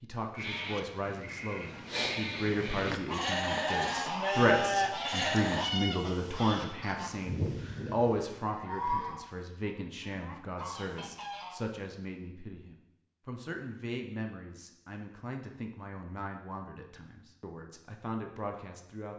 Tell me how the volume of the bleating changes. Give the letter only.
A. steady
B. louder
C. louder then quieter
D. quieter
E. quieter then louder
B.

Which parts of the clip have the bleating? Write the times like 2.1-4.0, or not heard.
0.3-5.7.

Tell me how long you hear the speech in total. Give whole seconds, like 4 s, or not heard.
19 s.